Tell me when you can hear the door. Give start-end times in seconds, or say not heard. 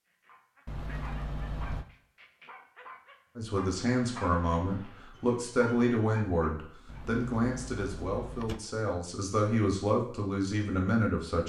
0.7-1.9, 6.8-8.6.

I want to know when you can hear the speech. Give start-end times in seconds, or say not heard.
3.4-11.4.